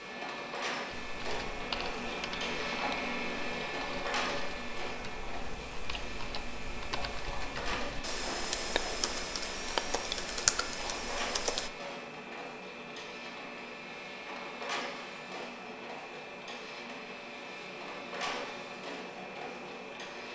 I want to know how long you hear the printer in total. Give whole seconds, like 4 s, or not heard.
20 s.